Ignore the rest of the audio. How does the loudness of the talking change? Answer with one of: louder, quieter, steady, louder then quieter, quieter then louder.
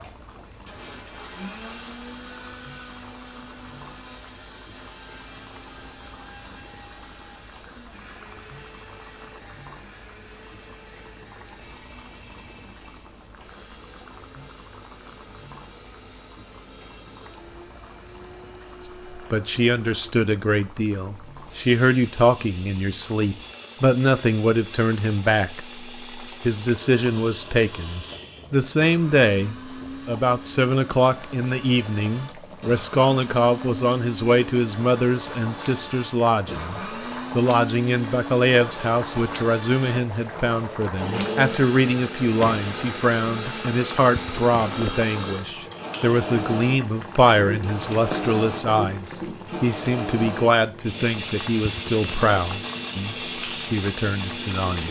steady.